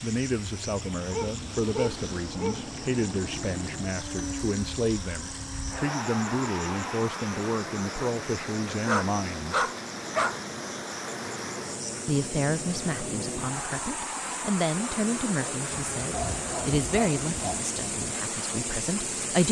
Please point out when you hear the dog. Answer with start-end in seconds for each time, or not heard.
1.1-2.6, 8.8-10.4, 15.7-17.6.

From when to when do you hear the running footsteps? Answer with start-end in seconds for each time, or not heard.
not heard.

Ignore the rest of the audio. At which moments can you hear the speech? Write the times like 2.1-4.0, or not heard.
0.0-9.7, 12.1-19.4.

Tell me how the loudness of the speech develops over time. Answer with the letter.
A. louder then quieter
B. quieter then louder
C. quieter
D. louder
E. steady
E.